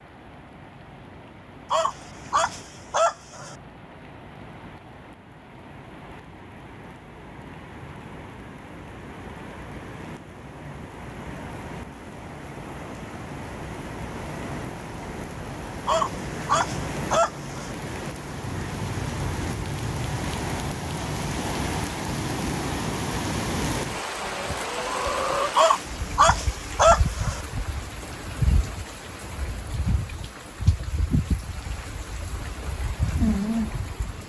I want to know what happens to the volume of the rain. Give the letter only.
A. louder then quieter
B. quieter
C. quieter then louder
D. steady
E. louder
E.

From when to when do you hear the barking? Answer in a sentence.
You can hear the barking from 1.7 to 3.5 s, from 15.8 to 17.8 s and from 25.6 to 27.4 s.